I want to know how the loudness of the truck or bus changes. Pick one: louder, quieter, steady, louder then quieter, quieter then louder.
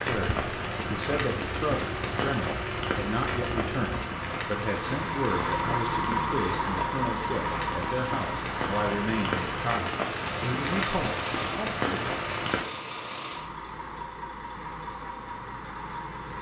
louder then quieter.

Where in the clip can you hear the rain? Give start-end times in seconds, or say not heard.
0.0-12.7.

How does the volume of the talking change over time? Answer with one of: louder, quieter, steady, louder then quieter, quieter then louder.
steady.